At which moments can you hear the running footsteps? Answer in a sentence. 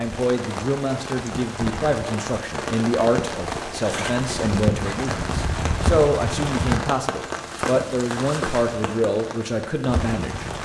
You can't hear the running footsteps here.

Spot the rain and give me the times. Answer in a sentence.
You can hear the rain from 0.0 to 10.6 s.